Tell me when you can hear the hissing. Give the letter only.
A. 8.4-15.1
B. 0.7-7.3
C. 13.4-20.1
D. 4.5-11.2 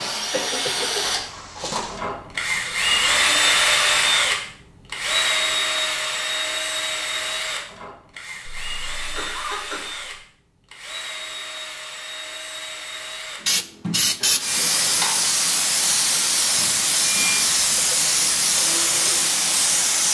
C.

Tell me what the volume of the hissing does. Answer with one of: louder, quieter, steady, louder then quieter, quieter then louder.
steady.